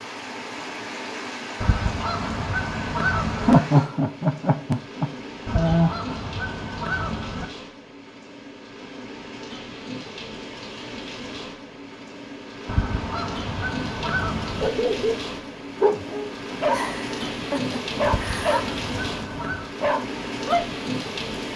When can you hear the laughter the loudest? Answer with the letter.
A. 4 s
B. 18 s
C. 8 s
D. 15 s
A.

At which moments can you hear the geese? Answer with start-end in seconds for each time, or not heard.
1.6-3.6, 5.5-7.5, 12.7-14.7, 18.0-19.7.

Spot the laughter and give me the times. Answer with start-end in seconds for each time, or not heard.
3.4-6.0, 16.7-18.6.